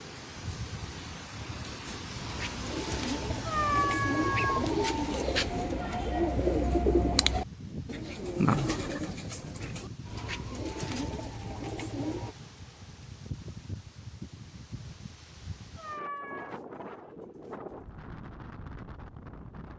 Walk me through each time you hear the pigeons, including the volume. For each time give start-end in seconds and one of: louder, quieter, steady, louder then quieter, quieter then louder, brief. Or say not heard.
1.9-12.3 louder then quieter.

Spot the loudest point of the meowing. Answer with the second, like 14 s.
4 s.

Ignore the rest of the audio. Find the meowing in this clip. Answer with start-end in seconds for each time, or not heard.
3.5-4.7, 15.8-16.6.